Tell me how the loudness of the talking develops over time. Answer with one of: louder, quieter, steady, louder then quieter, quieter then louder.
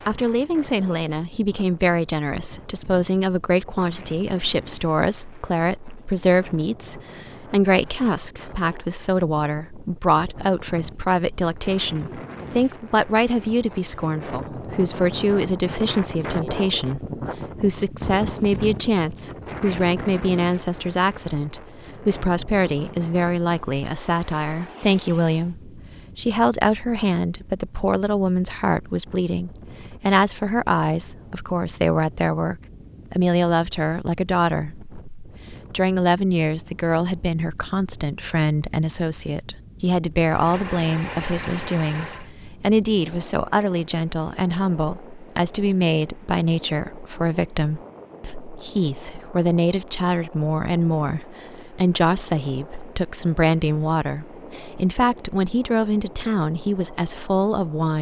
steady.